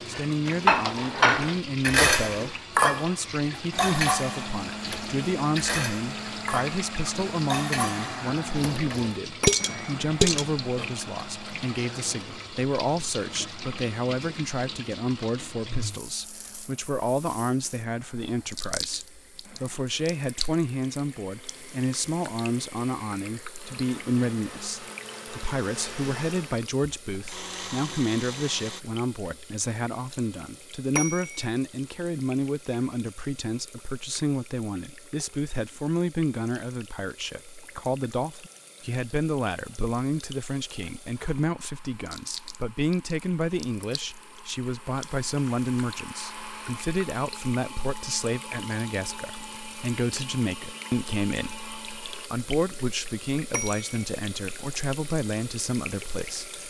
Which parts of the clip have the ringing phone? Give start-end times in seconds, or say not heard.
9.4-9.9, 30.9-31.4, 53.5-54.0.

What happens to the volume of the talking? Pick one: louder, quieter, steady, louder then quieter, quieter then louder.
steady.